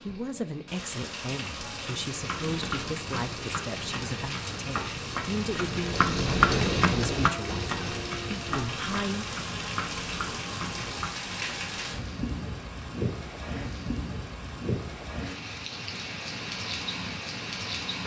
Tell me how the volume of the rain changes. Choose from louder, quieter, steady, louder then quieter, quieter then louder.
steady.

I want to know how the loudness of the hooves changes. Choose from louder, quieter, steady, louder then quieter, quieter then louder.
louder then quieter.